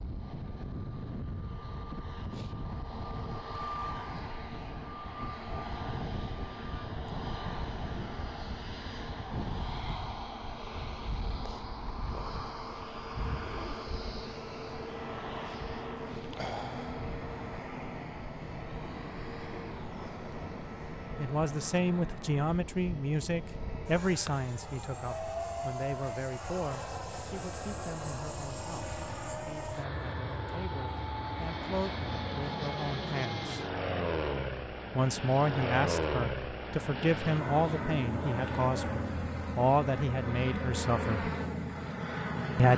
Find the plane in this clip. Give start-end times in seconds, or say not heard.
0.0-42.7.